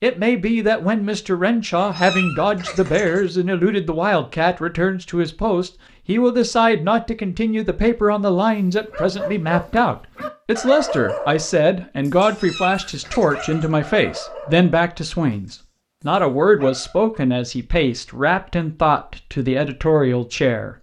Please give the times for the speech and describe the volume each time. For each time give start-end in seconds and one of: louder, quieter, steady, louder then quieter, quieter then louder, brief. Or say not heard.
0.0-20.7 steady.